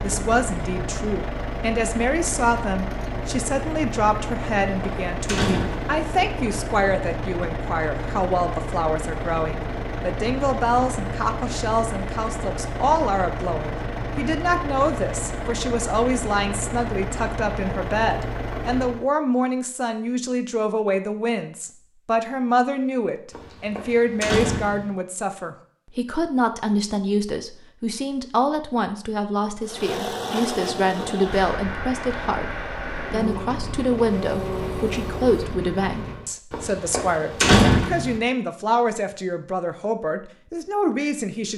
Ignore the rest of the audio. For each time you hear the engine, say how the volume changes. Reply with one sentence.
The engine can be heard from 0.0 to 19.1 s, at a steady volume; and from 29.6 to 36.4 s, at a steady volume.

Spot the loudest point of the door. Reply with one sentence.
The volume of the door peaks at 38 seconds.